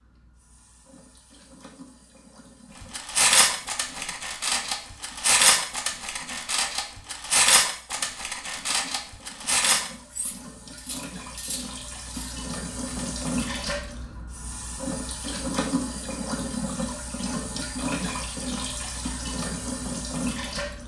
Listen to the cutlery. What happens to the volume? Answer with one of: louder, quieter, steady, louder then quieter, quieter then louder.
quieter.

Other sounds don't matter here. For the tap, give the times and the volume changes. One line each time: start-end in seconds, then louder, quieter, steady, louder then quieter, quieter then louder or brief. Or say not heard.
0.0-20.8 louder.